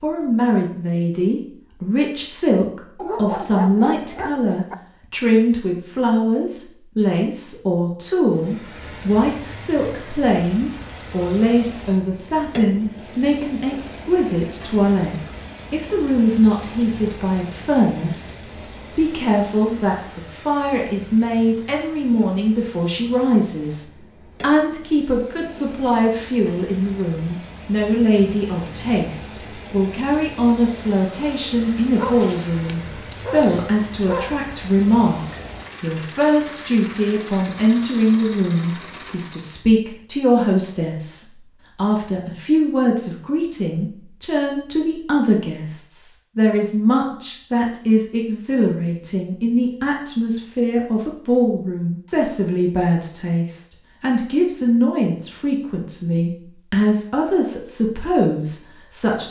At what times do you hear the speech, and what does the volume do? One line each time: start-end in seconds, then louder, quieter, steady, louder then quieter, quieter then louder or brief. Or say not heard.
0.0-59.2 steady.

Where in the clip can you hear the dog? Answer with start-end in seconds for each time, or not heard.
3.0-4.8, 31.9-34.4.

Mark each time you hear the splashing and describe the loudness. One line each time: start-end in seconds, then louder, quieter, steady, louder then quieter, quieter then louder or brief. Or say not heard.
not heard.